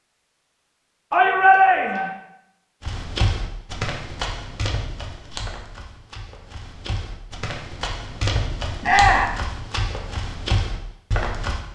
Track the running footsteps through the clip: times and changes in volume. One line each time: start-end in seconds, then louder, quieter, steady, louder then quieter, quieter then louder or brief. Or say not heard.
2.8-11.6 quieter then louder.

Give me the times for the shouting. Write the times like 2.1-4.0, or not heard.
1.1-2.1, 8.8-9.3.